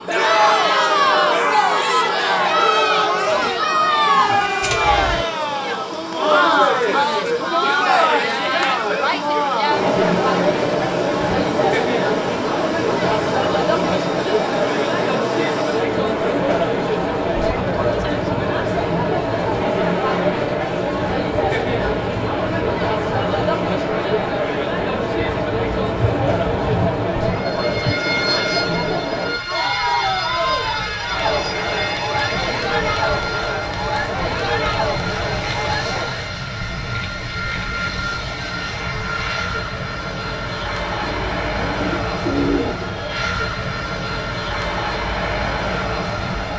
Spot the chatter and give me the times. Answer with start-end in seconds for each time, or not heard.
0.1-36.3.